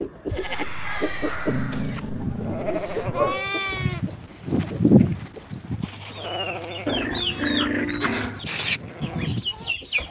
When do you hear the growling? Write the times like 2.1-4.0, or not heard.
1.4-3.5, 6.8-8.4.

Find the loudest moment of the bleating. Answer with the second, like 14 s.
5 s.